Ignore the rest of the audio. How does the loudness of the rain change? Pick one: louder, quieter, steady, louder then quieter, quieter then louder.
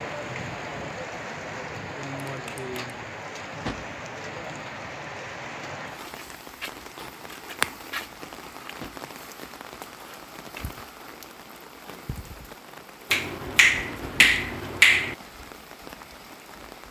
quieter.